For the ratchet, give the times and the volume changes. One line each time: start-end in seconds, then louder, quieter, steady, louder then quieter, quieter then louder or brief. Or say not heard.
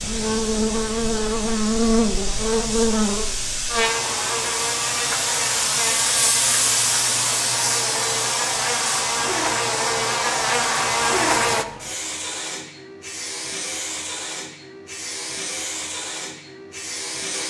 not heard.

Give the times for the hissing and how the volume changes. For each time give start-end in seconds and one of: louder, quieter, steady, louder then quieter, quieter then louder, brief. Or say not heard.
0.0-17.4 louder then quieter.